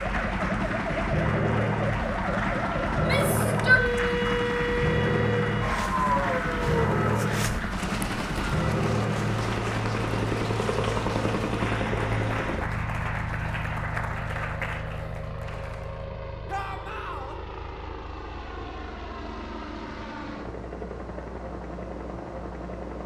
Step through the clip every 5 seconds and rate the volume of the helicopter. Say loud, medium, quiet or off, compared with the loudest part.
loud, loud, loud, medium, medium.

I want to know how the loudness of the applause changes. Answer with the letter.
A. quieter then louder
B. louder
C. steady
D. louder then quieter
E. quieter
C.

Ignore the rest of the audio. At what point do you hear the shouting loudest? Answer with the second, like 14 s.
4 s.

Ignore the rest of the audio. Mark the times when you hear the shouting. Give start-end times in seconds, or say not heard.
2.9-4.2, 16.4-17.4.